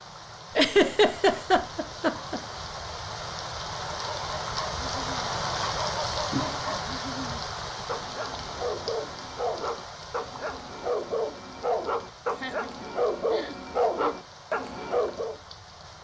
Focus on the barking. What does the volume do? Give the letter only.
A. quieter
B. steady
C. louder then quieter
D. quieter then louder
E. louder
E.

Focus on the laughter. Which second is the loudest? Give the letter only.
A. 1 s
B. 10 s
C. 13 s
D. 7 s
A.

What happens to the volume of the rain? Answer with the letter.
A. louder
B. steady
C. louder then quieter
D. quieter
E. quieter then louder
C.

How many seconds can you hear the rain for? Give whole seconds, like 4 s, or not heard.
16 s.